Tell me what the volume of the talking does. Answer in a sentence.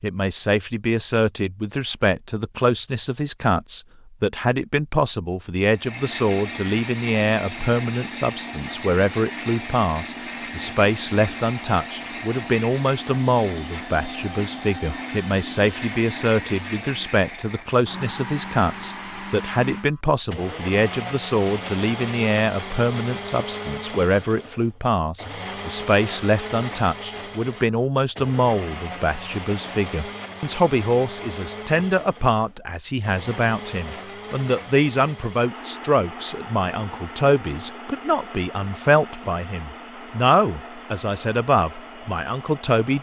The loudness of the talking stays about the same.